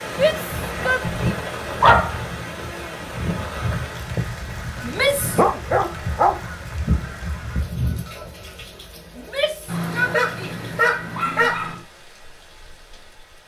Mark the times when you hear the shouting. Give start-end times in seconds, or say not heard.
0.1-1.1, 4.8-5.5, 9.2-11.5.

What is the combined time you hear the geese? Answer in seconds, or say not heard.
8 s.